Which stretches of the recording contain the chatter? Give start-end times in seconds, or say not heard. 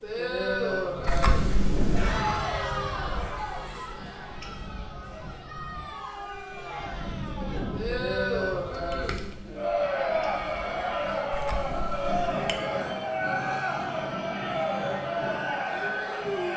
0.0-16.5.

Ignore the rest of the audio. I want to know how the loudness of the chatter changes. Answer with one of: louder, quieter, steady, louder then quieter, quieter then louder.
quieter then louder.